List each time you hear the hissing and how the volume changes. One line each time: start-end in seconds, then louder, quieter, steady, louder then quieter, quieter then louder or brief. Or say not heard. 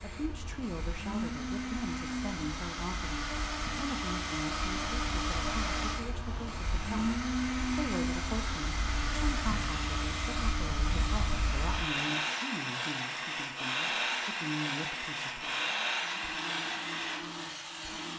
0.0-18.1 louder.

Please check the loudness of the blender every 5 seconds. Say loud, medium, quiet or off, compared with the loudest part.
loud, loud, medium, medium.